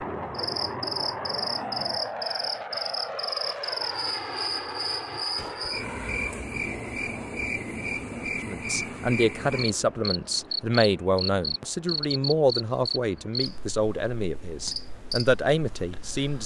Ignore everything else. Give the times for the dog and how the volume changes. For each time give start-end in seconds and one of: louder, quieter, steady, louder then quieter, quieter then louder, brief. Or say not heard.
not heard.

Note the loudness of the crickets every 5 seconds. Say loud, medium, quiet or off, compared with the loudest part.
loud, loud, loud, medium.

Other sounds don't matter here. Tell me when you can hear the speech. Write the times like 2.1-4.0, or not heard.
8.4-16.4.